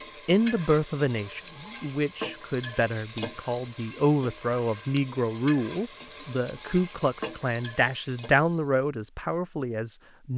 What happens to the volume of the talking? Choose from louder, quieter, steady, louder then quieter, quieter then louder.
steady.